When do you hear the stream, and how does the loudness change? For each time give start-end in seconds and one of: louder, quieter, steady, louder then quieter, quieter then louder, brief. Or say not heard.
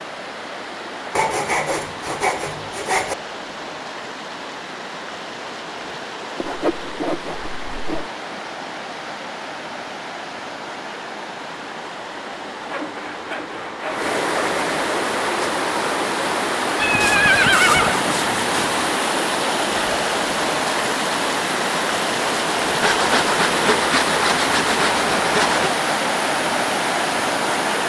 0.0-27.8 louder.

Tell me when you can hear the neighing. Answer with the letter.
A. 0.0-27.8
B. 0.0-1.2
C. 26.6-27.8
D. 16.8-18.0
D.